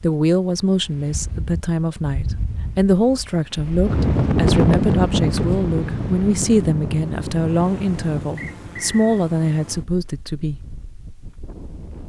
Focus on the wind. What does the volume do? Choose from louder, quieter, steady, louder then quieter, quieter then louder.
louder then quieter.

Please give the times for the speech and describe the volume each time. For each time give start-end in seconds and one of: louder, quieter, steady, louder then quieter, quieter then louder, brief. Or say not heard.
0.0-10.6 steady.